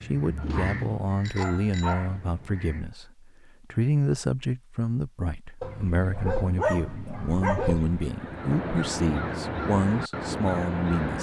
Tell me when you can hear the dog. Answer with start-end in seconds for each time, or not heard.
0.3-2.2, 5.6-8.1.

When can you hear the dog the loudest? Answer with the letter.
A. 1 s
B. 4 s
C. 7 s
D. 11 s
C.